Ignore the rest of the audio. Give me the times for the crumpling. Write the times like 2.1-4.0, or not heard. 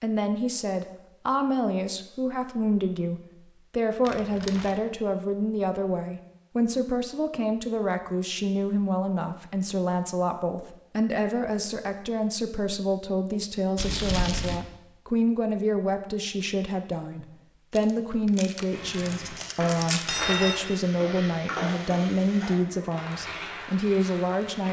4.0-4.8, 13.8-14.6, 17.8-20.1.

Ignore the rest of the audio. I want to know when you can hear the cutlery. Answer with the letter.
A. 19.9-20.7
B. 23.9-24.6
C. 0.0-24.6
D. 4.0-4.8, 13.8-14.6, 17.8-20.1
A.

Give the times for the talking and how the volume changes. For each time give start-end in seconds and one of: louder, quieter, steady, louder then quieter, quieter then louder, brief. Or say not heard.
0.0-24.6 steady.